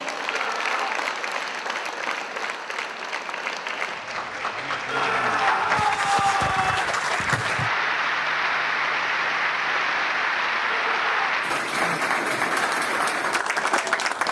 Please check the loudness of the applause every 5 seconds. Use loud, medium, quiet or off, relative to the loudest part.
medium, loud, loud.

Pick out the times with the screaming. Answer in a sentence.
The screaming can be heard from 0.2 to 1.1 s, from 4.8 to 6.8 s and from 10.7 to 11.2 s.